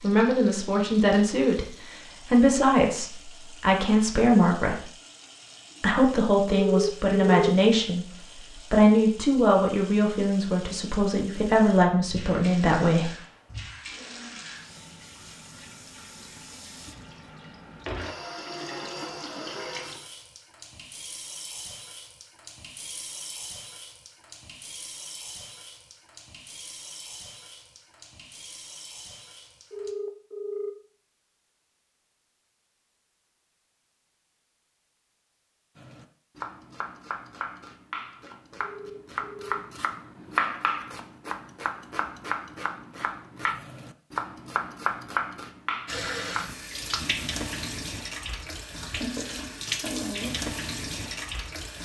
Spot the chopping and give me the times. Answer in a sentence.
You can hear the chopping from 35.8 to 47.2 s.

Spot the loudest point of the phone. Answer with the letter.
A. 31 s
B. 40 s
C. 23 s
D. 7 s
D.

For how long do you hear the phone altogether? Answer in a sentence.
The phone can be heard for 3 seconds in total.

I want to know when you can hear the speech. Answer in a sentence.
You can hear the speech from 0.0 to 4.9 s, from 5.8 to 8.1 s and from 8.7 to 13.2 s.